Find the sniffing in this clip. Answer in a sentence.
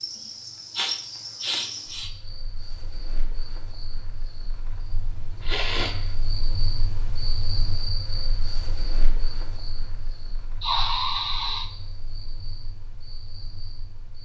You can hear the sniffing from 0.8 to 2.1 s, from 5.4 to 6.5 s and from 10.6 to 11.7 s.